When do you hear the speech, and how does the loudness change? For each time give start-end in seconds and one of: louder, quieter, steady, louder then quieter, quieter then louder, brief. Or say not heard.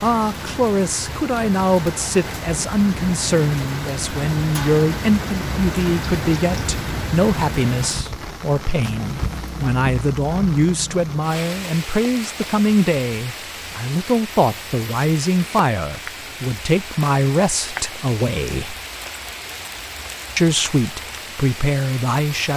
0.0-18.8 steady
20.4-22.5 brief.